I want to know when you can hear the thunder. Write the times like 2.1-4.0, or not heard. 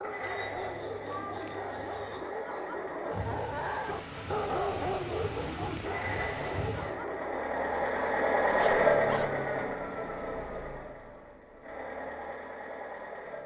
3.1-6.9.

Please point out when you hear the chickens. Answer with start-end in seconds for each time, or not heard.
not heard.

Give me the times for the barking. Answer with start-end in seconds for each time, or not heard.
0.0-9.4.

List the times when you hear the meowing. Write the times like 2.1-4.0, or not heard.
0.2-2.2.